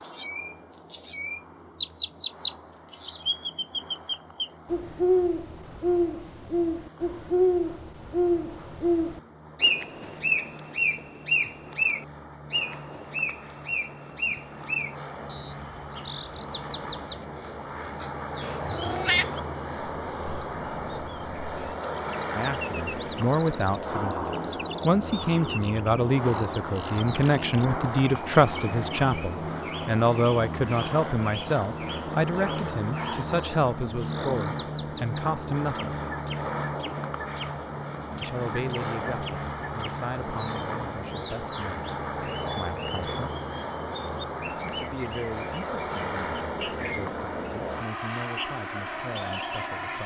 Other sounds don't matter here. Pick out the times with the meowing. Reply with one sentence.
The meowing can be heard from 18.4 to 19.3 s.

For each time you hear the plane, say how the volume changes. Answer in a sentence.
You can hear the plane from 0.0 to 50.0 s, getting louder.